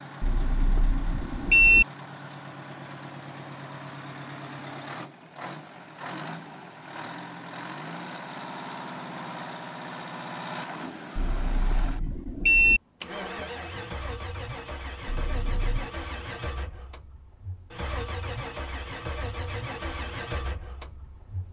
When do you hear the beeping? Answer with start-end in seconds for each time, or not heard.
0.2-1.9, 11.2-12.8, 15.1-15.9.